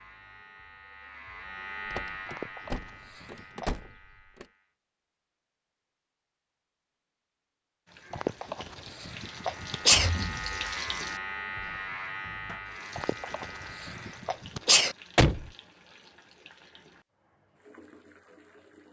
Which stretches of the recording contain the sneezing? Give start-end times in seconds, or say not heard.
2.2-3.8, 8.1-10.1, 12.9-14.9.